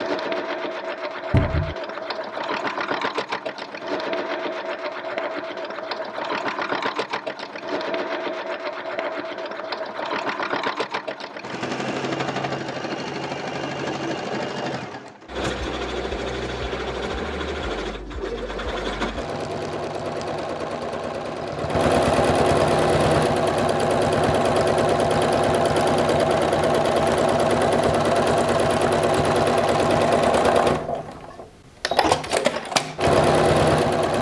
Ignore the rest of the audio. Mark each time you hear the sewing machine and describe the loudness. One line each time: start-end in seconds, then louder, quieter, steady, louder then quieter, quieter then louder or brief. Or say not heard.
0.0-34.1 louder.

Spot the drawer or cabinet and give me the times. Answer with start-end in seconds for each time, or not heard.
1.3-1.8.